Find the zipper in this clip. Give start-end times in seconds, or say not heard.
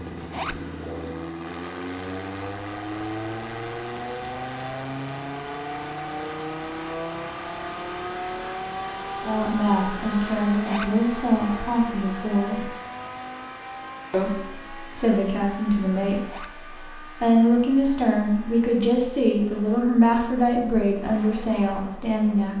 0.1-0.6, 10.5-10.9, 16.1-16.6.